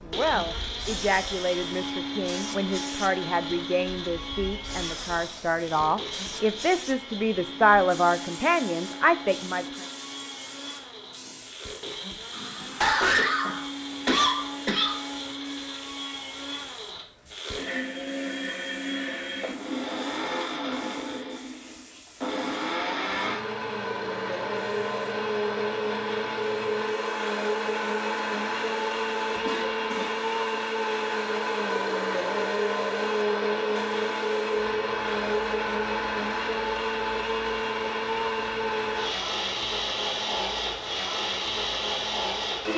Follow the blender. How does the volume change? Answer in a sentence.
The loudness of the blender goes up.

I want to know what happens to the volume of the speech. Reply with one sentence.
The loudness of the speech goes up.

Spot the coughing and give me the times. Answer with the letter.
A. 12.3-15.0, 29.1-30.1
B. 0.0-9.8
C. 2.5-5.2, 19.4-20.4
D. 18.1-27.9
A.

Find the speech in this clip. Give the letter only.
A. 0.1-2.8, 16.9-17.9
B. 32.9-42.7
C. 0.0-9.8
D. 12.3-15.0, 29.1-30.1
C.